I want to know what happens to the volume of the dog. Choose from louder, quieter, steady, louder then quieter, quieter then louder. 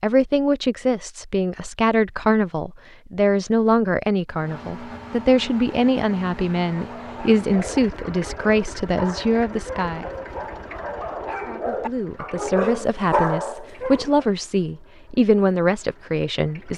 louder.